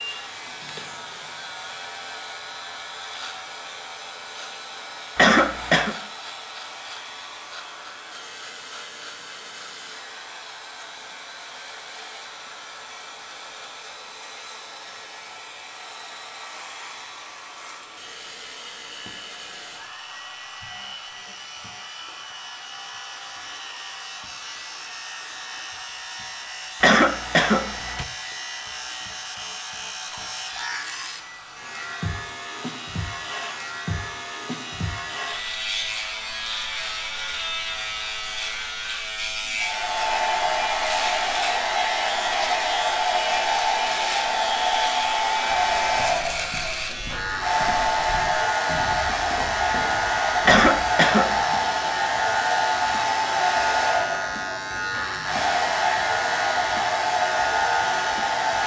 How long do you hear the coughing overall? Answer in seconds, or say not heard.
3 s.